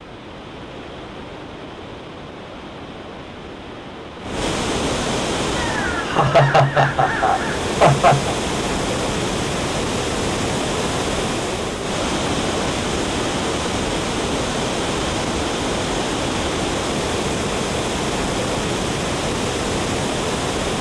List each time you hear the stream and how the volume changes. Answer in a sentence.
The stream can be heard from 0.0 to 20.7 s, getting louder.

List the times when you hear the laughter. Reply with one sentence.
The laughter can be heard from 6.0 to 8.3 s.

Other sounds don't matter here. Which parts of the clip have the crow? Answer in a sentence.
The crow can be heard from 5.5 to 7.7 s.